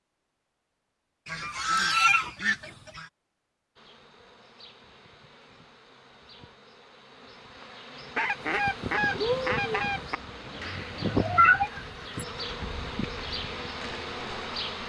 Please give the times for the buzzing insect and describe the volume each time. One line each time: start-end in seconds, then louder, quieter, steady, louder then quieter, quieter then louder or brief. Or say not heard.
3.8-14.8 louder.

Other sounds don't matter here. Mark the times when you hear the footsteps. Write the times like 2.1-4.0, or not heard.
not heard.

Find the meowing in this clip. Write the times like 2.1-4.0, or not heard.
10.6-12.2.